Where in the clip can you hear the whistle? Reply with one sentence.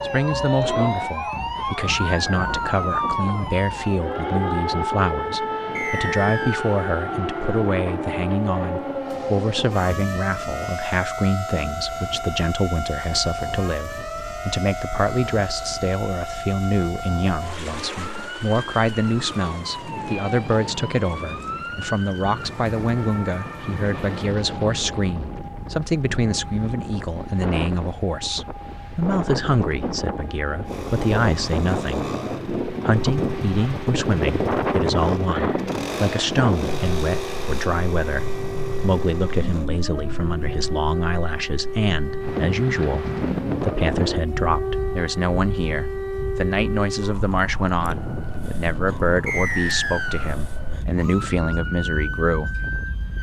The whistle can be heard from 5.8 to 6.8 s and from 49.2 to 50.4 s.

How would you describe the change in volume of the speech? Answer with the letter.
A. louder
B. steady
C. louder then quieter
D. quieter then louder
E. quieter
B.